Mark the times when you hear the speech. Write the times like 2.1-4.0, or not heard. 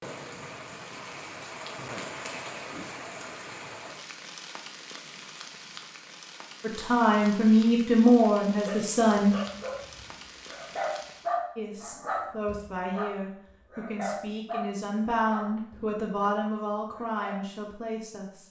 6.6-9.3, 11.6-18.4.